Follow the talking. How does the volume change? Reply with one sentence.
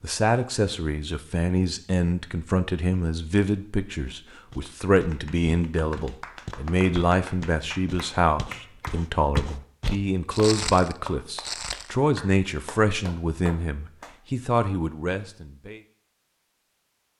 The loudness of the talking stays about the same.